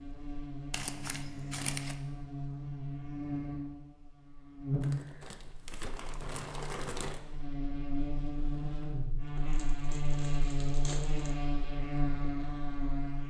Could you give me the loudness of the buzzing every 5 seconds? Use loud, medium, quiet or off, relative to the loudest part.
loud, medium, loud.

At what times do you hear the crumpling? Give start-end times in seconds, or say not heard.
0.7-1.9, 4.8-7.2, 9.3-11.3.